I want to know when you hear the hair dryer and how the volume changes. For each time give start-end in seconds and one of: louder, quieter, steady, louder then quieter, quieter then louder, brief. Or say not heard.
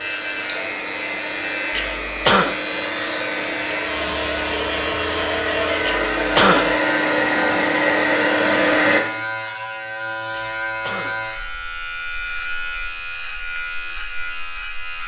0.0-9.0 louder.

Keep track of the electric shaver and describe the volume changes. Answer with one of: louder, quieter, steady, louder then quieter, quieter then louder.
steady.